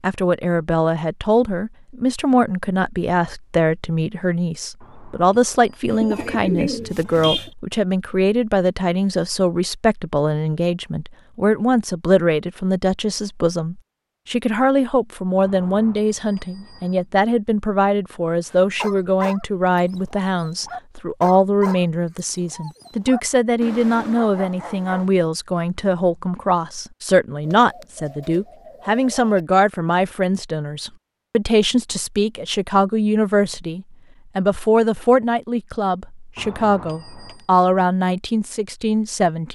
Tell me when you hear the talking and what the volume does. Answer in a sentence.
The talking can be heard from 0.0 to 39.4 s, at a steady volume.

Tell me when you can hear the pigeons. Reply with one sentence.
The pigeons can be heard from 5.9 to 7.5 s and from 27.4 to 29.4 s.